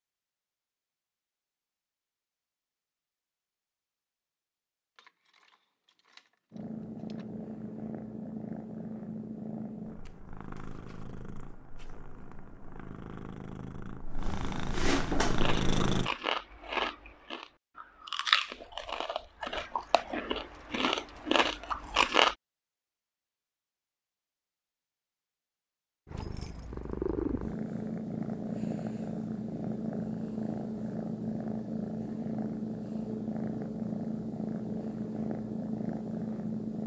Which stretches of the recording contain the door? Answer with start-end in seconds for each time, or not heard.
not heard.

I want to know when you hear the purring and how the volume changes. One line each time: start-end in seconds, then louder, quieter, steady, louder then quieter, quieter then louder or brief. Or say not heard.
6.5-16.1 quieter then louder
26.1-36.8 steady.